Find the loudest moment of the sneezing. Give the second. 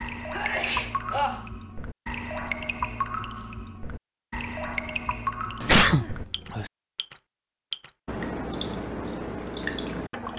6 s.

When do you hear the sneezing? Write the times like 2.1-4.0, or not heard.
0.3-1.4, 5.6-6.7.